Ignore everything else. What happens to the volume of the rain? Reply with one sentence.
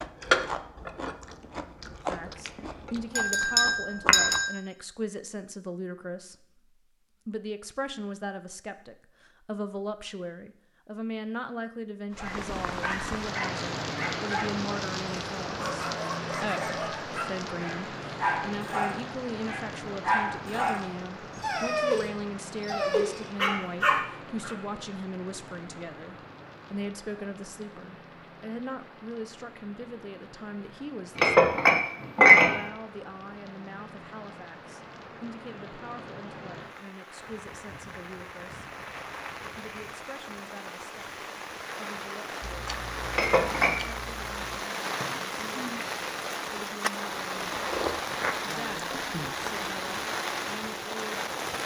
The volume of the rain goes down, then up.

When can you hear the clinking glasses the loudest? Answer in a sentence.
The volume of the clinking glasses peaks at 32 seconds.